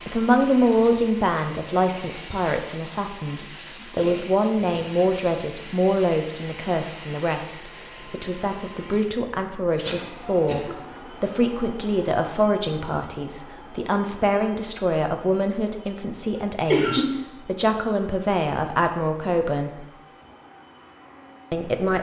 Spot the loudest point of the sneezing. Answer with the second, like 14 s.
17 s.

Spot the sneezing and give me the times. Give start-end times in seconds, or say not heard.
4.0-4.9, 9.7-10.8, 16.4-17.1.